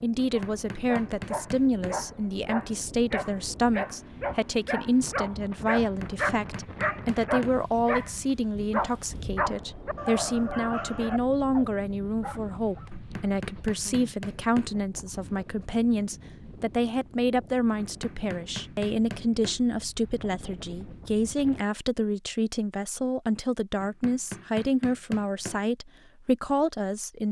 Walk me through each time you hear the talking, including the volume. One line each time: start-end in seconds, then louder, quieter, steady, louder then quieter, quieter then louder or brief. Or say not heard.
0.0-27.2 steady.